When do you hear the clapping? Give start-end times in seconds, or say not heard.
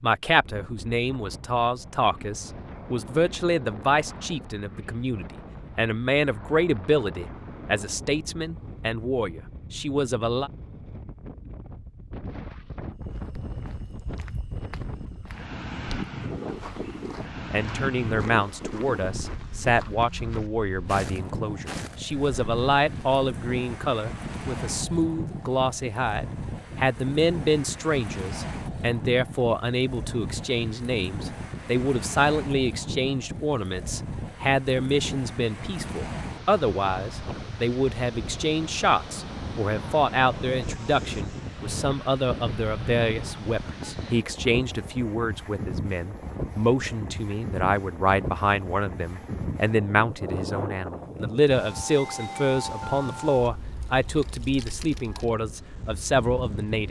not heard.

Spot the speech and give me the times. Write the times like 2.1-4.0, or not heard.
0.0-10.5, 17.5-56.8.